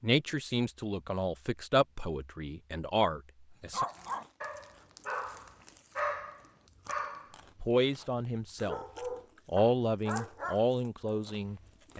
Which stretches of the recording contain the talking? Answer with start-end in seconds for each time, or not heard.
0.0-3.9, 7.6-8.8, 9.4-11.9.